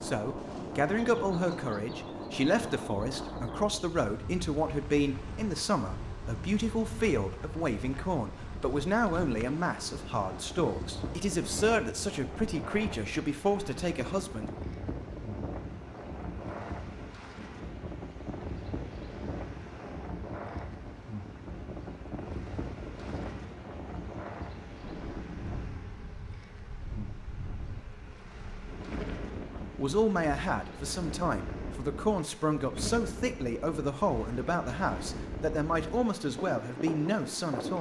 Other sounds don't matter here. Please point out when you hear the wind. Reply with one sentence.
You can hear the wind from 0.0 to 37.7 s.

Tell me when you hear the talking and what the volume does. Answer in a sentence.
The talking can be heard from 0.0 to 14.5 s, at a steady volume; and from 29.6 to 37.7 s, at a steady volume.